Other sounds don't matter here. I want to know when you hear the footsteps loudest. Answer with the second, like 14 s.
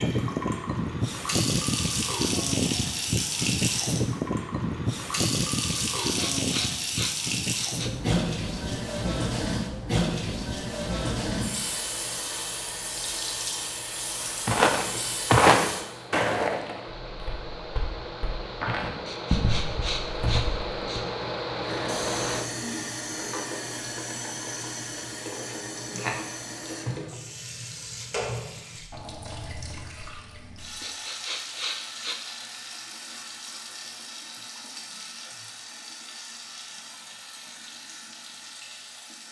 15 s.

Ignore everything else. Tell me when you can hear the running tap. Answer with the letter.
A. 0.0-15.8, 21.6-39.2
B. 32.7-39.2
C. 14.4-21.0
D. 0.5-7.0
A.